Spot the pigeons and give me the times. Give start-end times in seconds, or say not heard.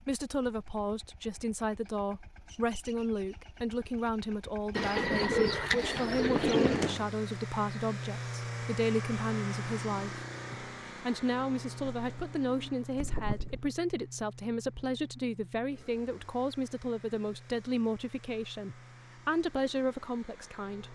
4.8-7.0, 11.8-13.6.